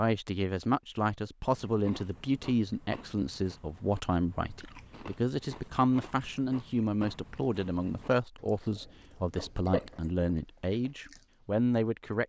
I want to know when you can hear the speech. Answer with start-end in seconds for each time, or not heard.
0.0-12.2.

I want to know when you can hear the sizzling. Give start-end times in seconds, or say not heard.
not heard.